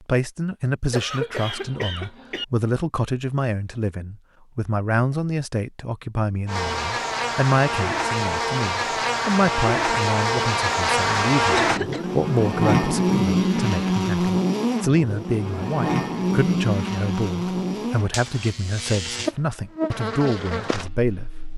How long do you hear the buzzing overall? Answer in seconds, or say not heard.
15 s.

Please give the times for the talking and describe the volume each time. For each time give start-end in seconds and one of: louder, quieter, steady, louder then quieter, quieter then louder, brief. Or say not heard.
0.1-21.3 steady.